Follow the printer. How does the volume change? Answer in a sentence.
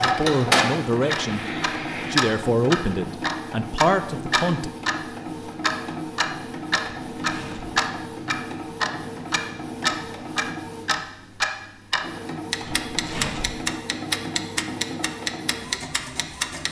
The loudness of the printer goes down.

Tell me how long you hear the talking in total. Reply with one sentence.
The talking can be heard for 4 seconds in total.